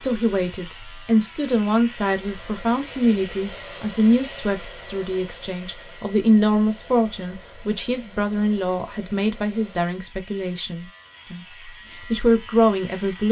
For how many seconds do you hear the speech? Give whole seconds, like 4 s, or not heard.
13 s.